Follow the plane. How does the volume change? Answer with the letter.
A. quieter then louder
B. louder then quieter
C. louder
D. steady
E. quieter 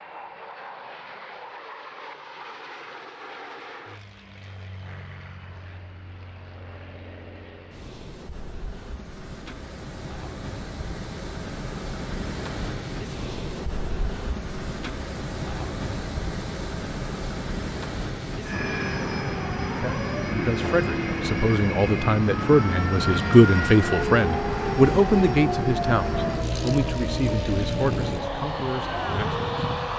C.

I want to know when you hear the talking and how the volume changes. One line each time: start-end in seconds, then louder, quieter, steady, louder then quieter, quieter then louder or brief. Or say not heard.
19.7-29.9 louder then quieter.